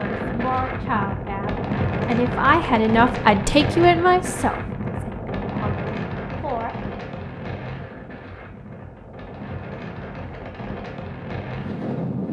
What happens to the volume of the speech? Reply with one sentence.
The loudness of the speech goes up, then down.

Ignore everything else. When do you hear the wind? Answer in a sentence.
You can hear the wind from 0.0 to 12.2 s.